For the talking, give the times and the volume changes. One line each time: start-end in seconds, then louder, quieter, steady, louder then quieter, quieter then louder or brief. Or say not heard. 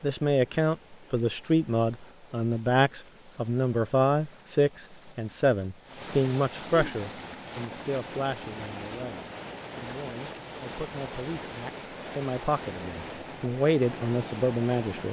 0.0-15.0 quieter then louder.